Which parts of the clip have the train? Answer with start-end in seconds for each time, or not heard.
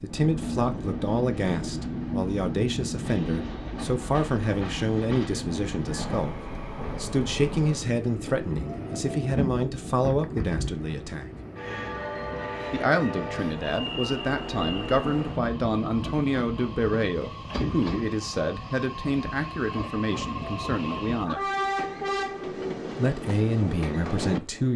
0.0-24.7.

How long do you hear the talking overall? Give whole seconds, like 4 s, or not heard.
22 s.